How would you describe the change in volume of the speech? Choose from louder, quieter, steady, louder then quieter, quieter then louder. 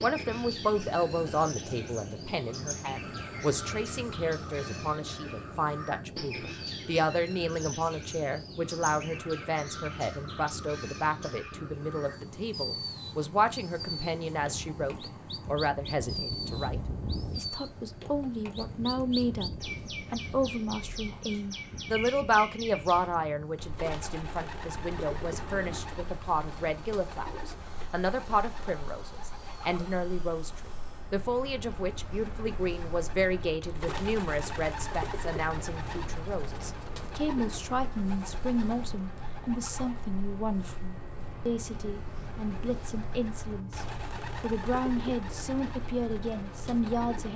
steady.